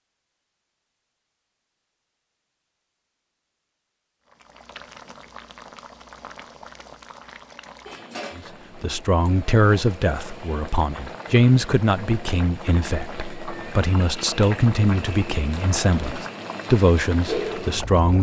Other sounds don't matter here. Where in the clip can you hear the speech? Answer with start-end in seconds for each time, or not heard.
8.3-18.1.